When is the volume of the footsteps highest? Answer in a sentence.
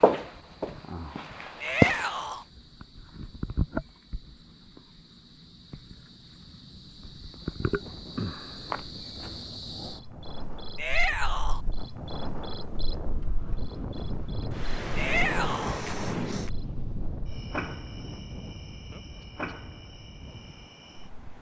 The loudest moment of the footsteps is at 2 seconds.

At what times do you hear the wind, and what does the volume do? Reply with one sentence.
You can hear the wind from 7.6 to 21.3 s, getting louder then quieter.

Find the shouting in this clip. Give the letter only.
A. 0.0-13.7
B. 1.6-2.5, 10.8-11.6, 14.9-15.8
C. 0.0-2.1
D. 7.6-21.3
B.